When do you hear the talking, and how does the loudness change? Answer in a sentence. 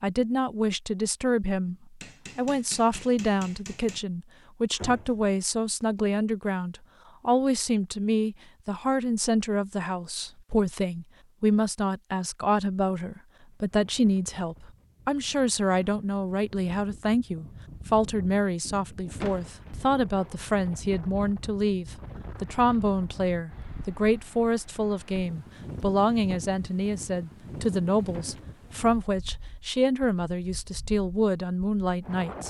You can hear the talking briefly from 0.0 to 1.8 s; and from 2.4 to 32.4 s, at a steady volume.